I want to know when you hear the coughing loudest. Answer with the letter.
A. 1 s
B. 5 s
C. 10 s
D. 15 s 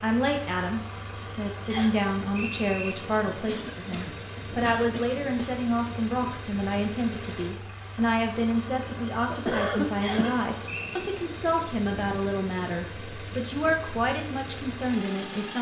C.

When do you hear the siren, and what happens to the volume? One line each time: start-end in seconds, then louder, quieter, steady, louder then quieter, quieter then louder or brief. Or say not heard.
not heard.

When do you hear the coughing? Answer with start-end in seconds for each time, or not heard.
3.3-5.7, 9.3-10.4.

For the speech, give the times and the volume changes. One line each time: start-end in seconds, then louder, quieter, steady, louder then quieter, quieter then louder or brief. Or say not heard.
0.0-15.5 steady.